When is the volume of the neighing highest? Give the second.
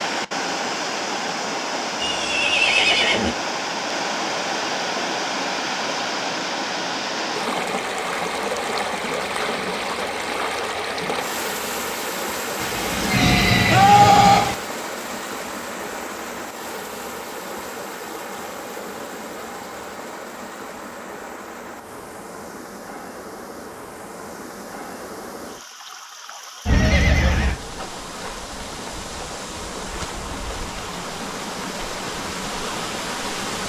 14 s.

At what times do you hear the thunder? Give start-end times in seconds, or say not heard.
12.6-14.6.